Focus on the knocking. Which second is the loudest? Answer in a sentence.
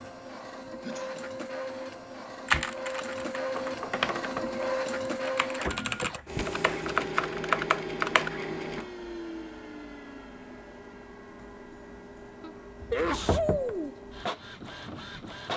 The volume of the knocking peaks at 13 seconds.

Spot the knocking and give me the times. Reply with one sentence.
The knocking can be heard from 3.5 to 4.5 s and from 12.8 to 13.8 s.